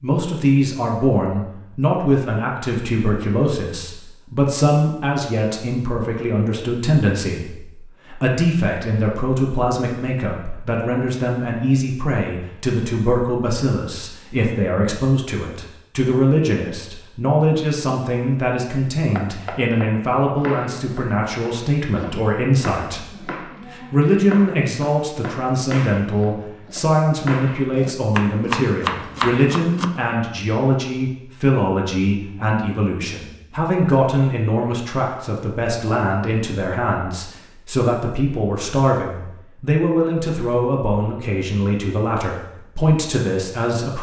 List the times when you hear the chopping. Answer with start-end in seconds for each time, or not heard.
19.1-29.9.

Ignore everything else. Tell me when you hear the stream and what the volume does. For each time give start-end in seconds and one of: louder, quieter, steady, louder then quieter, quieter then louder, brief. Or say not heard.
not heard.